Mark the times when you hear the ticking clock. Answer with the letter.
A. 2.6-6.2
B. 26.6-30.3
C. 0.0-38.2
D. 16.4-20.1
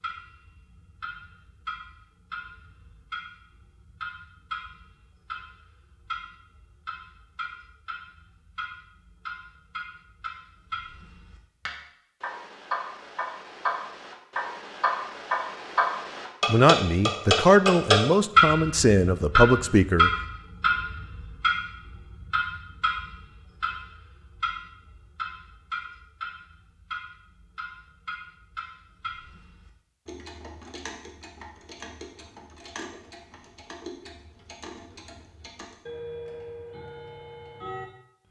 C.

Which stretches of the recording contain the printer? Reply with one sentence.
The printer can't be heard in this clip.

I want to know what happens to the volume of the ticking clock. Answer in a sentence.
The volume of the ticking clock goes up, then down.